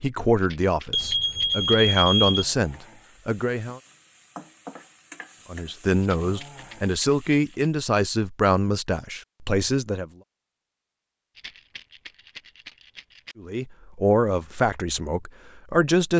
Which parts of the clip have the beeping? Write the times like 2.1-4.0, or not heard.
0.9-2.5.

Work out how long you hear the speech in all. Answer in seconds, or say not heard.
11 s.